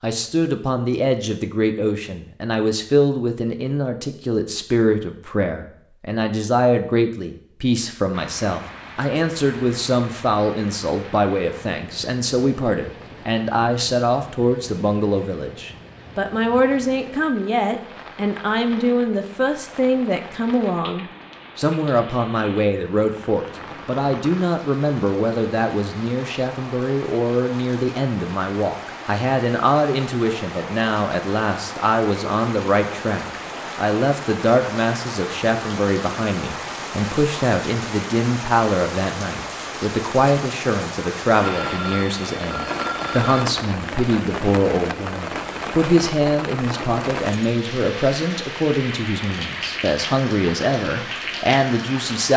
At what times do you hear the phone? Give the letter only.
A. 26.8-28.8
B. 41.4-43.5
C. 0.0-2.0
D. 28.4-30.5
B.